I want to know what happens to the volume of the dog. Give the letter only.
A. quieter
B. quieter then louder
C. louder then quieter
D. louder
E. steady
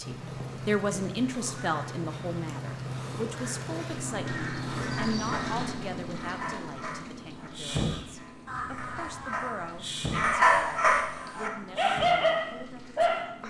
B.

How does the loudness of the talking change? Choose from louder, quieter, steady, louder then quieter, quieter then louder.
quieter.